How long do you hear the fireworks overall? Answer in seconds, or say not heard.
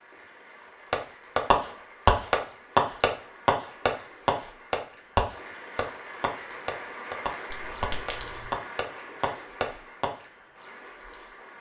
9 s.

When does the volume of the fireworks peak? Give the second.
2 s.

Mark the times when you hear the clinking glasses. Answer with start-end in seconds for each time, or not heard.
7.5-8.4.